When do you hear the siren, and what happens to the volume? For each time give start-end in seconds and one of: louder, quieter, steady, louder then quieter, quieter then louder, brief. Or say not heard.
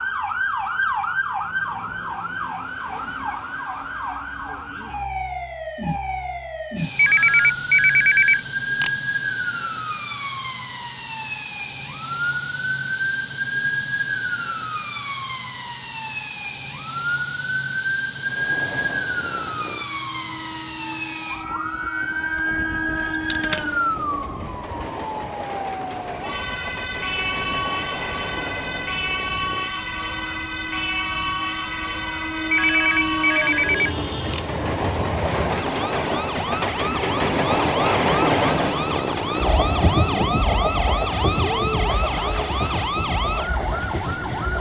0.0-44.5 steady.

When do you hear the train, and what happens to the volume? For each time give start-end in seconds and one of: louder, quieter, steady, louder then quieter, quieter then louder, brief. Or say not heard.
18.2-44.5 louder.